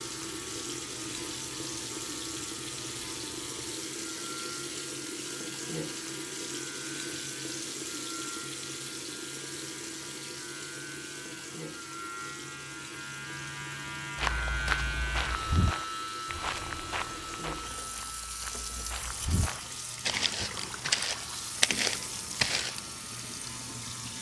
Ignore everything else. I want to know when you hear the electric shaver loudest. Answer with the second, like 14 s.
15 s.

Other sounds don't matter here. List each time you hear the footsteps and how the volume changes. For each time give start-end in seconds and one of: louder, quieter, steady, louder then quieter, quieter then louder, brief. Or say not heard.
14.2-22.9 quieter then louder.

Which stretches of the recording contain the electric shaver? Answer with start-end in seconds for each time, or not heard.
0.0-24.1.